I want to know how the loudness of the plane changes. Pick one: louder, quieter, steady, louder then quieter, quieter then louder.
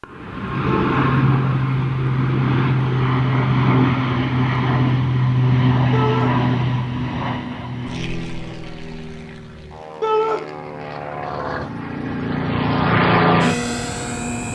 quieter then louder.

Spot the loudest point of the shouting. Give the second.
10 s.